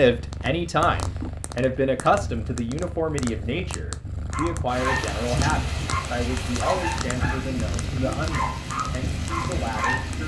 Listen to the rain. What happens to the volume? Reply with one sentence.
The loudness of the rain stays about the same.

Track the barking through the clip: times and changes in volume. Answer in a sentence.
You can hear the barking from 4.0 to 10.2 s, at a steady volume.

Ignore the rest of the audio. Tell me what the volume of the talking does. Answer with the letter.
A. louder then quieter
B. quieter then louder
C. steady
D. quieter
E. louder
D.